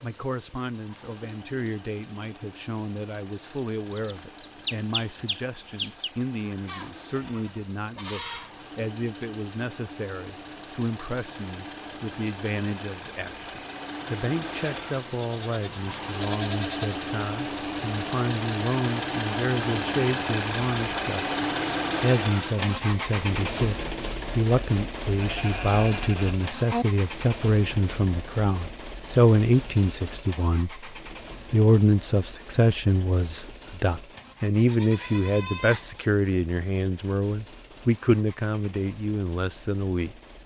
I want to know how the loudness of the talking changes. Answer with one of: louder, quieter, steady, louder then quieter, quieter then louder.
louder.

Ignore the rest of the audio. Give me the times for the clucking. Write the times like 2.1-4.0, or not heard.
3.5-6.1.